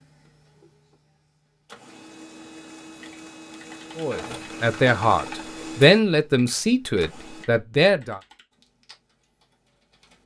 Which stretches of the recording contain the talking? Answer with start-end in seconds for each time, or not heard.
4.0-8.2.